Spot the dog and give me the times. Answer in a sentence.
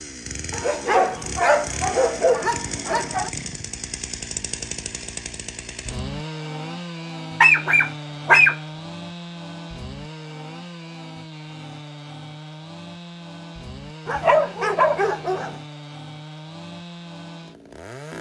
The dog can be heard from 0.5 to 3.3 s, from 7.4 to 8.6 s and from 14.1 to 15.6 s.